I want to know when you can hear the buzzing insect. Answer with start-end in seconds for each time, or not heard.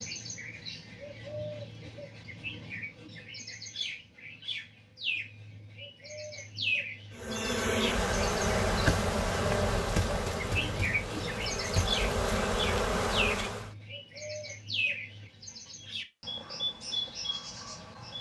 7.2-13.7.